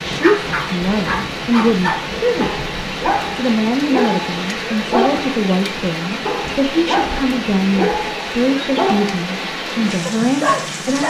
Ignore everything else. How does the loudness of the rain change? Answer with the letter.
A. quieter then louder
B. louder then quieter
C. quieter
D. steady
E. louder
D.